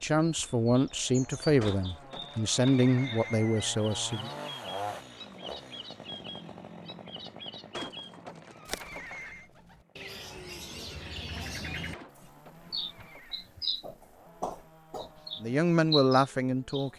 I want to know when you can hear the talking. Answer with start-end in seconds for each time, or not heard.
0.0-4.3, 15.4-16.9.